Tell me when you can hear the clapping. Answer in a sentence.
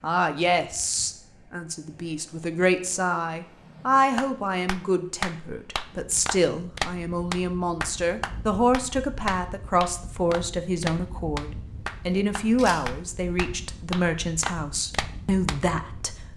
You can hear the clapping from 4.2 to 15.6 s.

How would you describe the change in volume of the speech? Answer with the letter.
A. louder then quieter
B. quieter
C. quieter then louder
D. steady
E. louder
D.